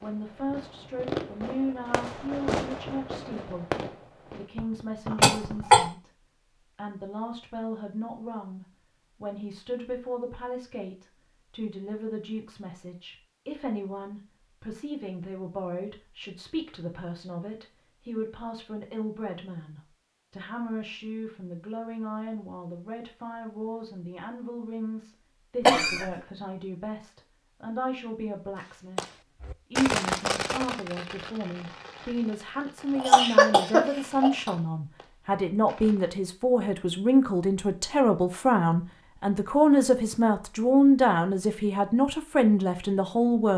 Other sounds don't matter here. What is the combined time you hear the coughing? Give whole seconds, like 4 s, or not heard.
3 s.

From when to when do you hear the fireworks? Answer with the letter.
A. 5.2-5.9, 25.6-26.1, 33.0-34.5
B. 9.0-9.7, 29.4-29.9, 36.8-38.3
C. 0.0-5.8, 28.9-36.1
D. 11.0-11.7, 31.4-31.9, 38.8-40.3
C.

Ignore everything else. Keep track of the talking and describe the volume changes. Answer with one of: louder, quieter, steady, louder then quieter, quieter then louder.
louder.